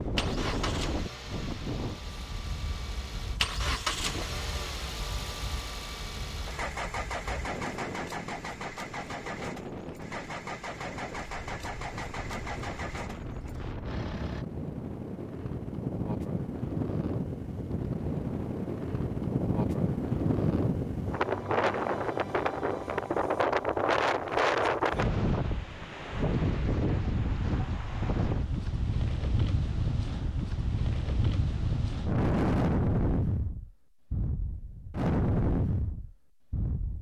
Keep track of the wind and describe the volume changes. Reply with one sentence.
The loudness of the wind goes up.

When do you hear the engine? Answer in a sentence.
The engine can be heard from 0.0 to 14.4 s.